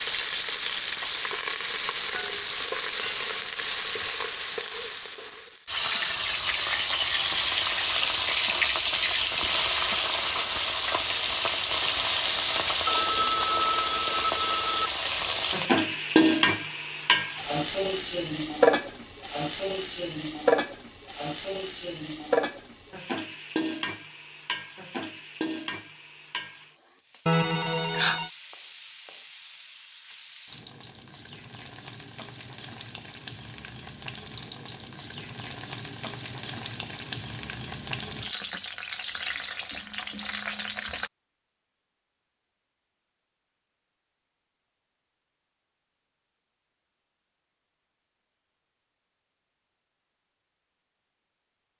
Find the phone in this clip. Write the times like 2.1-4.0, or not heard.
12.8-14.9, 27.2-28.3.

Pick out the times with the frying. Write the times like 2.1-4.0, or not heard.
0.0-41.1.